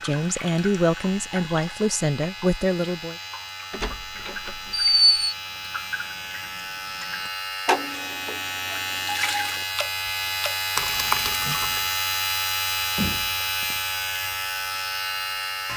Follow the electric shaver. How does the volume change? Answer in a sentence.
The loudness of the electric shaver goes up.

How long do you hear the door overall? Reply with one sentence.
The door can be heard for 2 seconds in total.